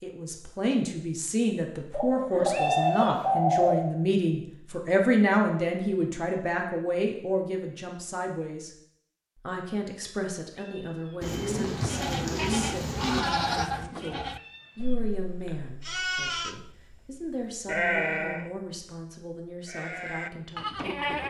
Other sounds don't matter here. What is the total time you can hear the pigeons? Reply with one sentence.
You can hear the pigeons for 4 seconds altogether.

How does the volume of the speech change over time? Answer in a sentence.
The volume of the speech goes down.